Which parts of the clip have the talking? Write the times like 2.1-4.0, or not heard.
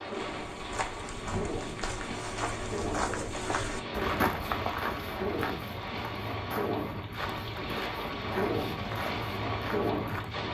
not heard.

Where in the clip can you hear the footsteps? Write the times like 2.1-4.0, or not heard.
0.1-10.3.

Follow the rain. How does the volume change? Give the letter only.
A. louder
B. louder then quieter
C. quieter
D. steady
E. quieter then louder
A.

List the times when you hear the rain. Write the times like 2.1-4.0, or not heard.
0.0-10.4.